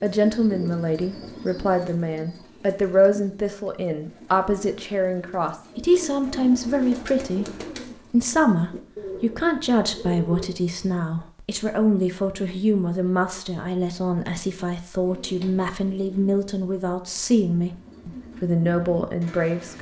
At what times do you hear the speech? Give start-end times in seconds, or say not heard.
0.0-7.5, 8.1-19.7.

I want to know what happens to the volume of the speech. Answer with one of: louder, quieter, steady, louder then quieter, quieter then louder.
steady.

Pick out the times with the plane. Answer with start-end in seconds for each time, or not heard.
not heard.